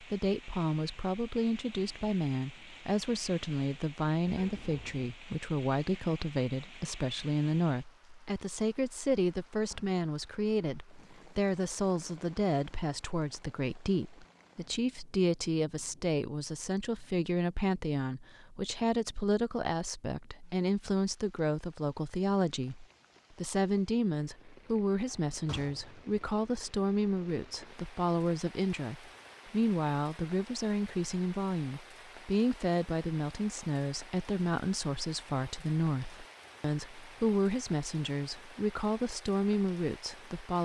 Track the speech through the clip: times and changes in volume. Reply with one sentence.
The speech can be heard from 0.0 to 40.6 s, at a steady volume.